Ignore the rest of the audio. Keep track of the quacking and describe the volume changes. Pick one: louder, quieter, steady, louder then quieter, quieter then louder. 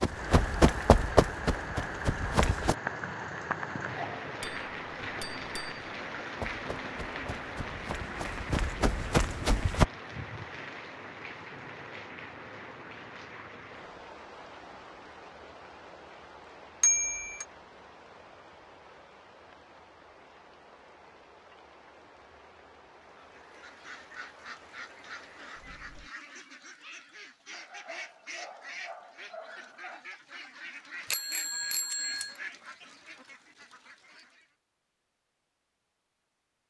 steady.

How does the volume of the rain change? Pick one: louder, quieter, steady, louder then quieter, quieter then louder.
quieter.